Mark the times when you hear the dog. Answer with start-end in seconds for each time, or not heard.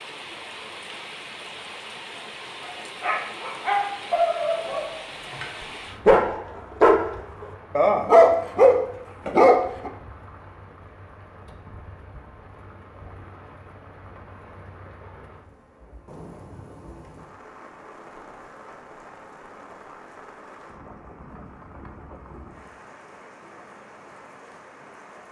2.6-9.9.